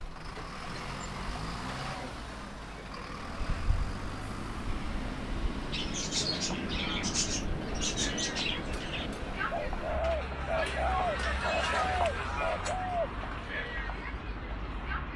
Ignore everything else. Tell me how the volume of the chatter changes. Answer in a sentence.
The loudness of the chatter goes up, then down.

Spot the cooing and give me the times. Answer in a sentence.
The cooing can be heard from 5.7 to 13.1 s.